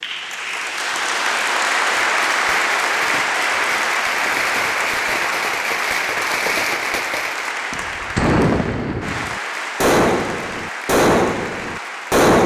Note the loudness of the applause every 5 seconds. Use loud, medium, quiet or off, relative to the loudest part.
loud, medium, medium.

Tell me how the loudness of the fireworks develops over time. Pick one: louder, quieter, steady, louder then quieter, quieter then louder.
louder.